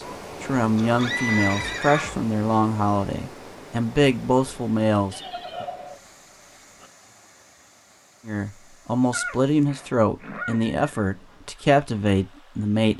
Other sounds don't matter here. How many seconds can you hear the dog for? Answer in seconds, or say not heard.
not heard.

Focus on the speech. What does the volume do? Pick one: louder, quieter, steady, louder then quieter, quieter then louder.
steady.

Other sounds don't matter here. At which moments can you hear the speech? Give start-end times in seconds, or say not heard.
0.4-5.7, 8.2-12.9.